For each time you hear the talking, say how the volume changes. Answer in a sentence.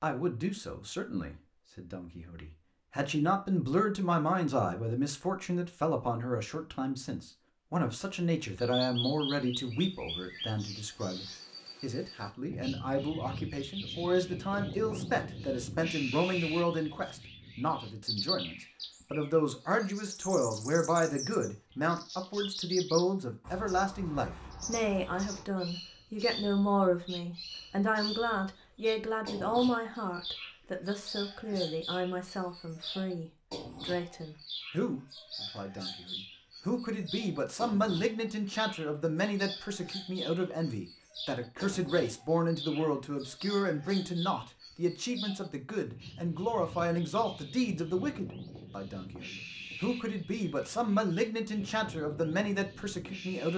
You can hear the talking from 0.0 to 53.5 s, at a steady volume.